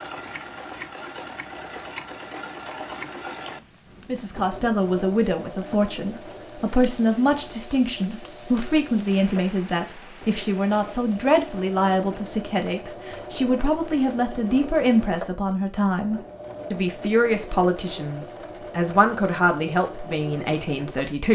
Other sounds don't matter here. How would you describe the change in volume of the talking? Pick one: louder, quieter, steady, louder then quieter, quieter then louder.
steady.